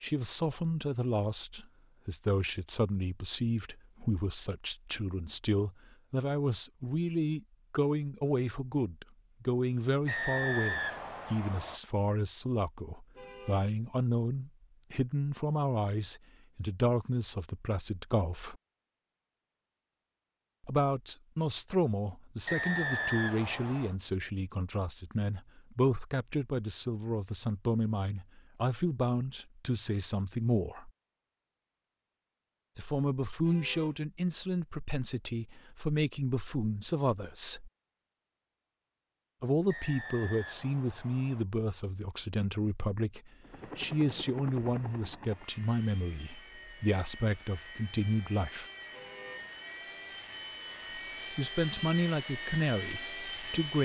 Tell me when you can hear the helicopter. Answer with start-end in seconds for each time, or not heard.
43.4-53.8.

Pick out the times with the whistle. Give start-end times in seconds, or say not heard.
10.1-11.8, 22.4-23.9, 39.6-41.5.